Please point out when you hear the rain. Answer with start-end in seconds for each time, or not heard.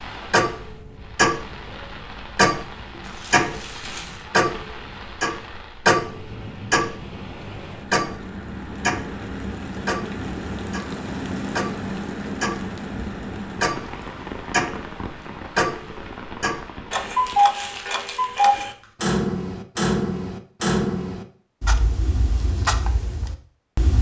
0.0-17.4.